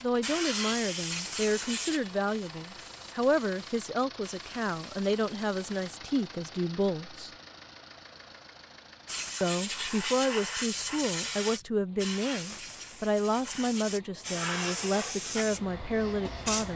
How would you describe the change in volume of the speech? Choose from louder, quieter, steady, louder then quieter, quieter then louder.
steady.